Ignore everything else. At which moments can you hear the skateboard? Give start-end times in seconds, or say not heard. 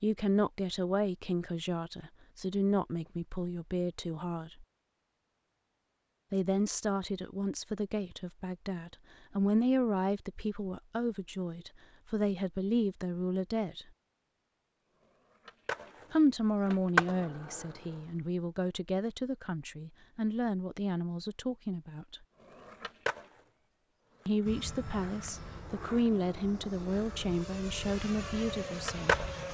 15.0-18.0, 22.6-29.4.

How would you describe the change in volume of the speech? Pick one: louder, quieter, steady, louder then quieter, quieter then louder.
steady.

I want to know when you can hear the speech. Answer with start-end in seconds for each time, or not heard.
0.0-4.7, 6.3-13.8, 16.1-22.2, 24.2-29.1.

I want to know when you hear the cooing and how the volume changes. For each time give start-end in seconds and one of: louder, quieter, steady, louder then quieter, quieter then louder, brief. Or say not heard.
not heard.